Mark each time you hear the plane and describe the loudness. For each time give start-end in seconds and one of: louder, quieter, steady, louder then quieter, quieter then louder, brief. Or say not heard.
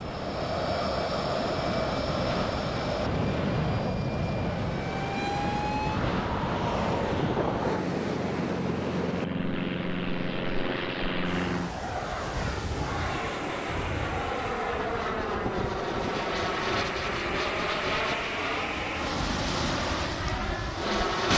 0.0-21.3 steady.